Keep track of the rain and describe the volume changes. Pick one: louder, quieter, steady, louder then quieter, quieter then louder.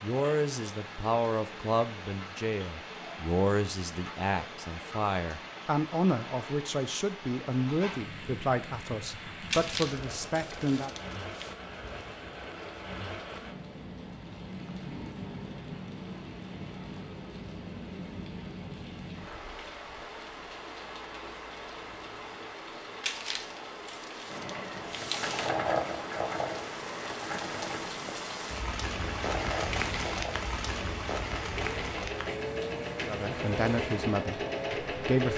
louder.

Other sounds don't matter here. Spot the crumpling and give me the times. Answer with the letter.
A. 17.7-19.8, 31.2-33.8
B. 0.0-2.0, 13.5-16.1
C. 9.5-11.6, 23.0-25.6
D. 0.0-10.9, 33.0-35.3
C.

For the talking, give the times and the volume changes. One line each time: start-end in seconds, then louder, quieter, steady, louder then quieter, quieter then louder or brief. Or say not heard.
0.0-10.9 steady
33.0-35.3 brief.